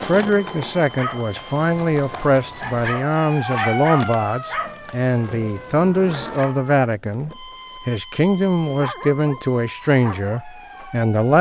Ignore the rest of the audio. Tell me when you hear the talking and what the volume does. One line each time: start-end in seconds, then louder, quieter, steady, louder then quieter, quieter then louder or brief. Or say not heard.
0.0-11.3 steady.